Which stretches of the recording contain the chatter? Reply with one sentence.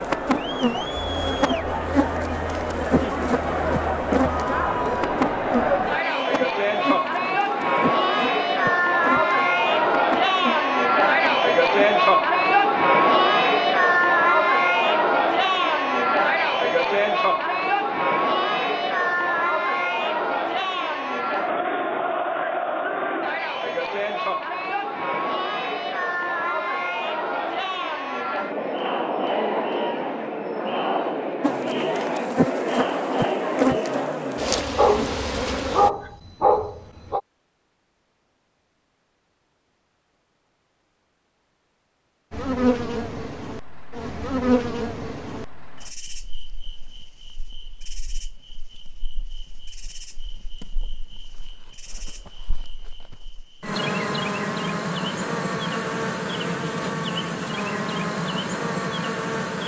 You can hear the chatter from 0.0 to 34.6 s.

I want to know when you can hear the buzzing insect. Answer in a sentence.
The buzzing insect can be heard from 0.0 to 12.0 s, from 31.4 to 35.9 s and from 42.3 to 59.6 s.